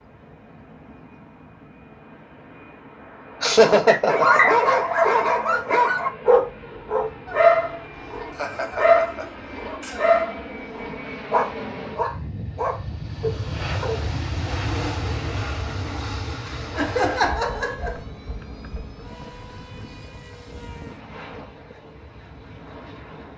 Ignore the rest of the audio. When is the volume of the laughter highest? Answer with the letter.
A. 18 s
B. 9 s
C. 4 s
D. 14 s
C.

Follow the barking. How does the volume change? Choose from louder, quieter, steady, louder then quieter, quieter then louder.
quieter.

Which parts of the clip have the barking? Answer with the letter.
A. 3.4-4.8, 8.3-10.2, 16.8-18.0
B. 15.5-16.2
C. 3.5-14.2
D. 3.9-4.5
C.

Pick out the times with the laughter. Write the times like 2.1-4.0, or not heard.
3.4-4.8, 8.3-10.2, 16.8-18.0.